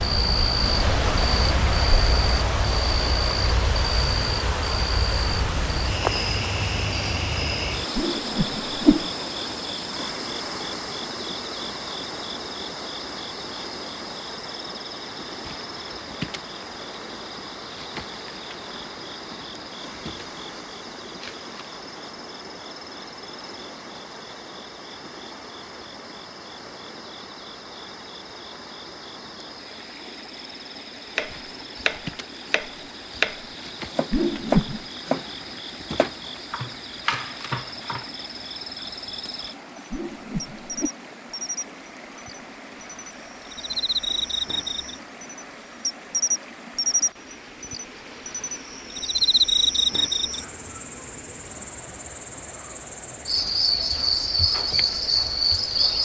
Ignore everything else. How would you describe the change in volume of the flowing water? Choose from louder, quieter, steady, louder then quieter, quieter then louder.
quieter.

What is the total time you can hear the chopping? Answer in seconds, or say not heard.
7 s.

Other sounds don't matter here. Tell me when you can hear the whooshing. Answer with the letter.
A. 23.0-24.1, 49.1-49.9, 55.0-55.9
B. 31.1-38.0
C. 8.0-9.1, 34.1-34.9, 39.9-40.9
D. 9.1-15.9
C.